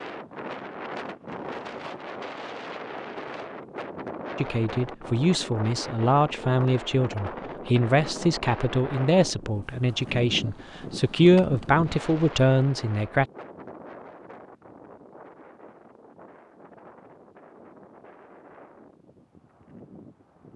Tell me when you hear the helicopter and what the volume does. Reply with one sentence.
You can't hear the helicopter here.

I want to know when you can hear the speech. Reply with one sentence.
You can hear the speech from 4.3 to 13.2 s.